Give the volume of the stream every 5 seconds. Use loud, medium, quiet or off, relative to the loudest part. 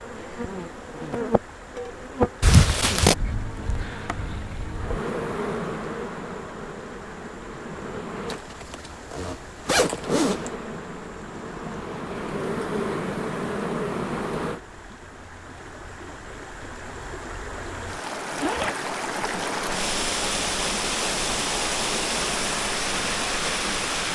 quiet, quiet, quiet, medium, loud.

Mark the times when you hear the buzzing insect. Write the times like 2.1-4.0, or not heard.
0.0-8.4, 10.0-14.6.